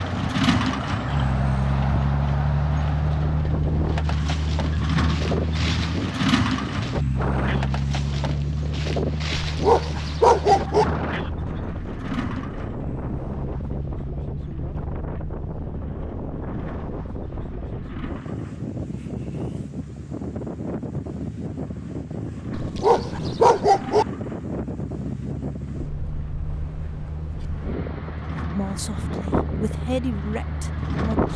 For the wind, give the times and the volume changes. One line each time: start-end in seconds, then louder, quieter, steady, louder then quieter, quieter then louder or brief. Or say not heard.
0.0-31.3 steady.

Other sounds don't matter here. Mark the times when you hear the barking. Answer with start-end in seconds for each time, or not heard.
9.4-10.8, 22.6-24.1.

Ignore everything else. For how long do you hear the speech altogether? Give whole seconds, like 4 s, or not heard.
3 s.